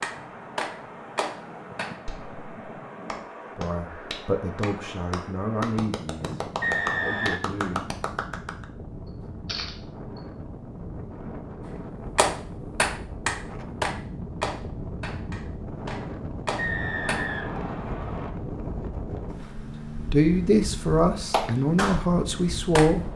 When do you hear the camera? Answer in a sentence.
You can hear the camera from 9.4 to 10.2 s.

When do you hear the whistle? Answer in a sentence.
The whistle can be heard from 6.6 to 7.4 s and from 16.6 to 18.3 s.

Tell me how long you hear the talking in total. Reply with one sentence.
You can hear the talking for 8 seconds altogether.